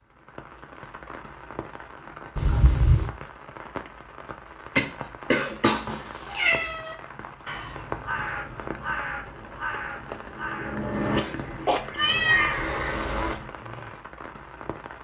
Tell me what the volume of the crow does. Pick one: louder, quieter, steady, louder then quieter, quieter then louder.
steady.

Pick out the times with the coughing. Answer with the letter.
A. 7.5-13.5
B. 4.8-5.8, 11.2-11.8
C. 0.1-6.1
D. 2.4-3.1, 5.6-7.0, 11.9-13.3
B.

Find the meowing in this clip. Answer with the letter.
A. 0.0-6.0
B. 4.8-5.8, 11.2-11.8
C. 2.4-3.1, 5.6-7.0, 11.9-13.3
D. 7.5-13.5
C.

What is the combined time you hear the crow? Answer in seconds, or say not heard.
6 s.